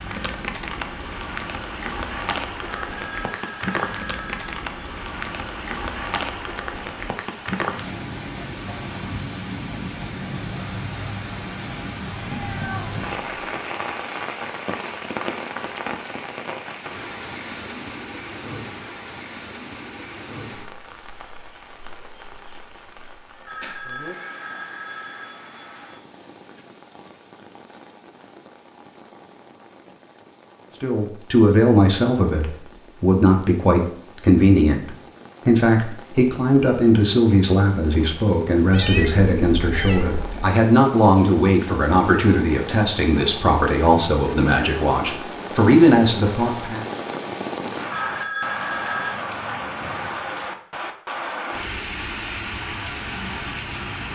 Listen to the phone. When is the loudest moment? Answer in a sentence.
The volume of the phone peaks at 48 seconds.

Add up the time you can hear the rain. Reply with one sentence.
The rain can be heard for 54 seconds in total.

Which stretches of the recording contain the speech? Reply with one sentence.
You can hear the speech from 30.8 to 46.9 s.